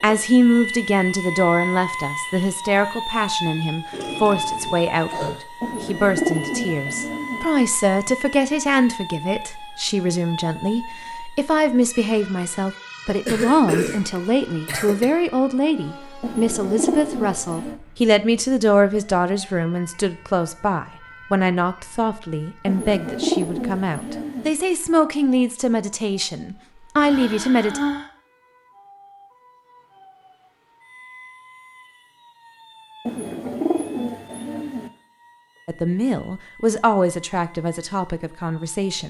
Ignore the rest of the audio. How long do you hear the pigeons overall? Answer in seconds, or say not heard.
7 s.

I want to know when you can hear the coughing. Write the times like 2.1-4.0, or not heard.
3.9-5.3, 13.1-15.1, 26.9-28.1.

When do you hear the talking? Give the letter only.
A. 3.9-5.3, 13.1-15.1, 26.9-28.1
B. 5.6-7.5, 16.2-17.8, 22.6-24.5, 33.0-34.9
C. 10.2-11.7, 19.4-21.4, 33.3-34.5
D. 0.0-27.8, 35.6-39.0
D.